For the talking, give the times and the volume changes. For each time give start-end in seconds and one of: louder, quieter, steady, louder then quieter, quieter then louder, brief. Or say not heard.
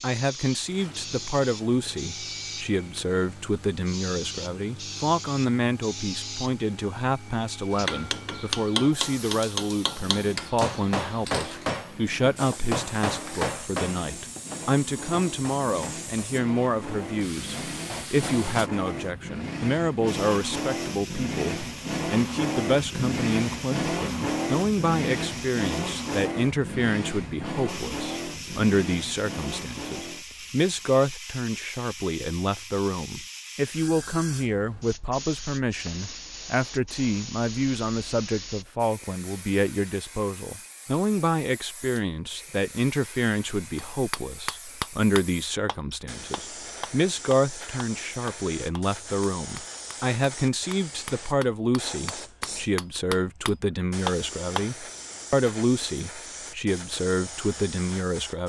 0.0-58.4 steady.